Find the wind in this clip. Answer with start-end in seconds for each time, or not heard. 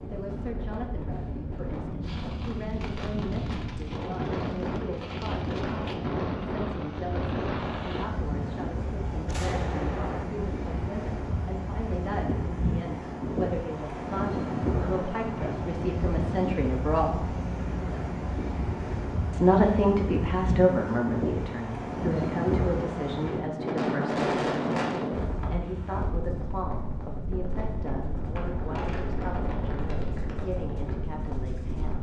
0.0-31.9.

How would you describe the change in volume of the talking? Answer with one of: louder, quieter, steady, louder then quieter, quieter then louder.
louder then quieter.